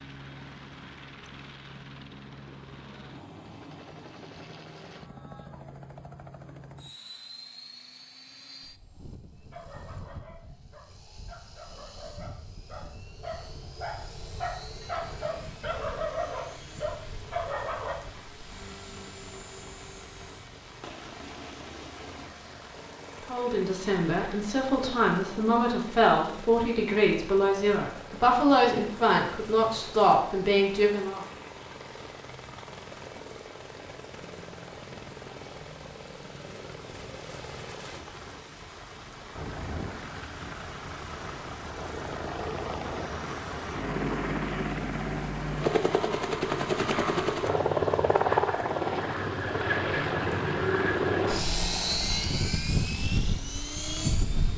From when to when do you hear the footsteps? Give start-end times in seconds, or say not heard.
not heard.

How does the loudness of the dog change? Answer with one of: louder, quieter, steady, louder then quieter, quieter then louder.
louder.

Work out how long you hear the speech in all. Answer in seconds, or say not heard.
8 s.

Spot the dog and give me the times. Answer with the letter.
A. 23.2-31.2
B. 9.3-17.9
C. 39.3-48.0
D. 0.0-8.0
B.